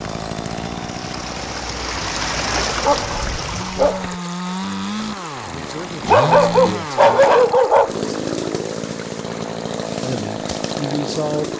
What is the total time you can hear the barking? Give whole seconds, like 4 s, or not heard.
4 s.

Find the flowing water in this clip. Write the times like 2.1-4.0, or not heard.
0.1-11.5.